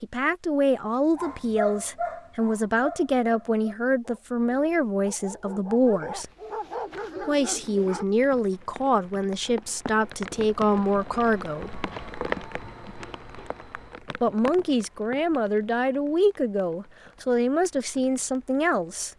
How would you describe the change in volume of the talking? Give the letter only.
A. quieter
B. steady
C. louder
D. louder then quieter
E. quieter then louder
B.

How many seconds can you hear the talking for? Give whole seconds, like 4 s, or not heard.
16 s.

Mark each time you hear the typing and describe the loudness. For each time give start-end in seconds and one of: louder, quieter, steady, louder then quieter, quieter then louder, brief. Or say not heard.
not heard.